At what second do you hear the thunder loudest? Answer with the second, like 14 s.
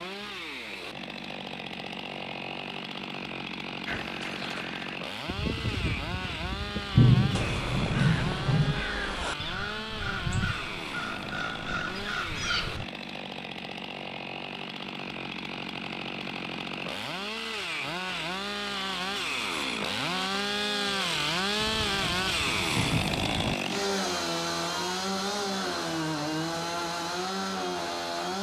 7 s.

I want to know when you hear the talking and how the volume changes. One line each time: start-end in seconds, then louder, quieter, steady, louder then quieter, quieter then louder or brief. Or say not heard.
not heard.